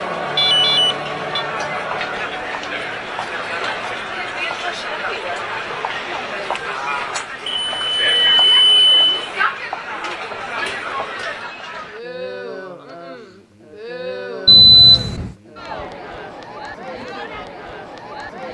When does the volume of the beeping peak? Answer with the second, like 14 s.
15 s.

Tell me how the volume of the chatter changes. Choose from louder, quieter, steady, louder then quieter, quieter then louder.
quieter.